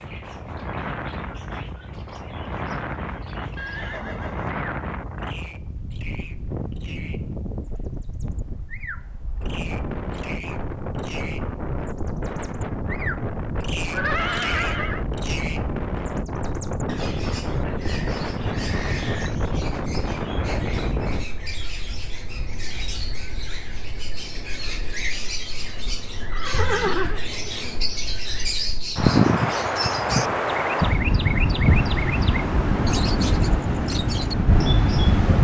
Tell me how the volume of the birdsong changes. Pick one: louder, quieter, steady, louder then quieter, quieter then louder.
louder.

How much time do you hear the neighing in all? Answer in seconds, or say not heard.
3 s.